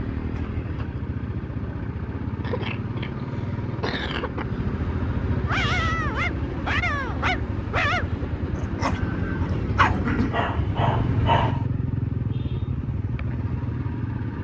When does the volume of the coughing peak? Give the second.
10 s.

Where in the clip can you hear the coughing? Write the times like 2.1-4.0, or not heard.
2.4-4.5, 9.9-10.4.